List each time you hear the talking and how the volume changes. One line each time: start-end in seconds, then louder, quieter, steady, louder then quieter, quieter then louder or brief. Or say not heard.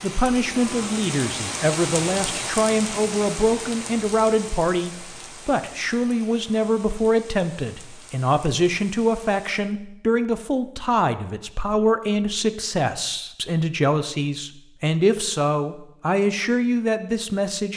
0.0-17.7 steady.